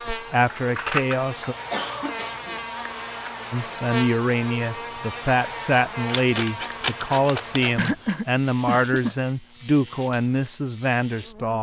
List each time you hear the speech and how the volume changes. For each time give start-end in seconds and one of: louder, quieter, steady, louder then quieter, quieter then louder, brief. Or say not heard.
0.1-1.6 brief
3.5-11.5 steady.